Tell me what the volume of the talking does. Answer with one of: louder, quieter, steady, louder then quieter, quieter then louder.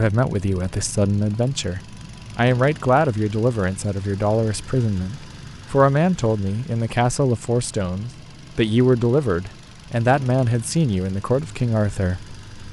steady.